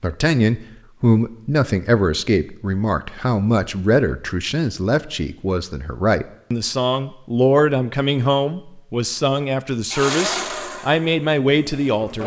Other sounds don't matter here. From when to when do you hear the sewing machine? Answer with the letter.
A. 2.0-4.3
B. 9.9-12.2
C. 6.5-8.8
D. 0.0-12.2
B.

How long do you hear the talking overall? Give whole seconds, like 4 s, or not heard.
12 s.